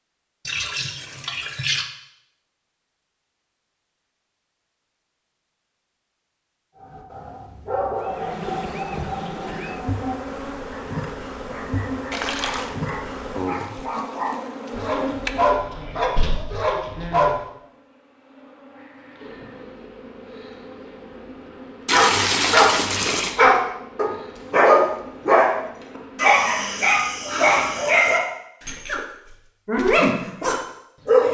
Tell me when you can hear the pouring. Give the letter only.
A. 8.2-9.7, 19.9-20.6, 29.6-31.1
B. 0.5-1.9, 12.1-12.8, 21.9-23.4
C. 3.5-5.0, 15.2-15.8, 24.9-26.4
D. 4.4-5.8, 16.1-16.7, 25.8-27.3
B.